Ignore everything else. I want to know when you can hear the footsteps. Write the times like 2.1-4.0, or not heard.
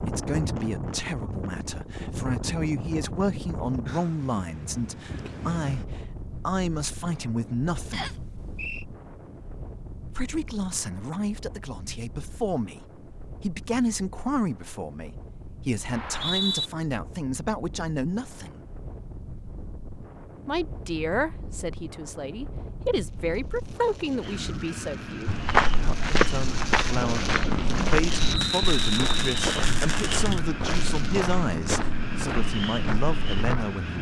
25.2-33.8.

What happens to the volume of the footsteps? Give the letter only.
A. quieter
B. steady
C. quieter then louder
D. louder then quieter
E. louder
A.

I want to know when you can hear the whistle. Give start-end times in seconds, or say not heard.
7.9-8.8, 15.9-16.7, 28.2-29.4.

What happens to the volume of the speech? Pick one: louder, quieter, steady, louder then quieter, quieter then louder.
steady.